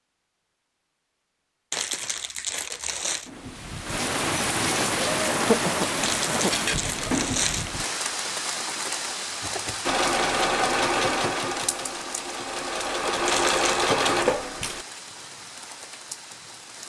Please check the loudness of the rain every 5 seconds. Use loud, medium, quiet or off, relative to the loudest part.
loud, loud, medium, quiet.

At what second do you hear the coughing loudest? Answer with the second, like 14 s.
6 s.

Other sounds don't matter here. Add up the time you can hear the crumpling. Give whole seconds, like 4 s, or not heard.
4 s.